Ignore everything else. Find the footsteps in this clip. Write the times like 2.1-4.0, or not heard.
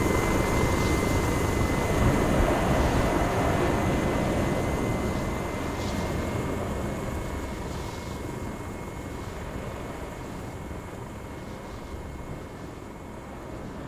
not heard.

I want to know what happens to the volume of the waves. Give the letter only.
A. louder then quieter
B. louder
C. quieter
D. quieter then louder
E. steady
C.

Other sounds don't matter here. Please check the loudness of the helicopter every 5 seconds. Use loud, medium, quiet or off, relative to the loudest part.
loud, medium, quiet.